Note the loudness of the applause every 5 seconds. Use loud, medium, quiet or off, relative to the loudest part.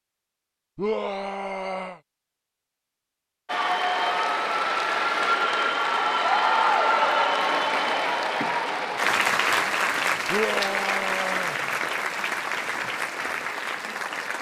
loud, loud, medium.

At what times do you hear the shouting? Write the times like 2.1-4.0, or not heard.
0.8-2.0, 10.3-11.6.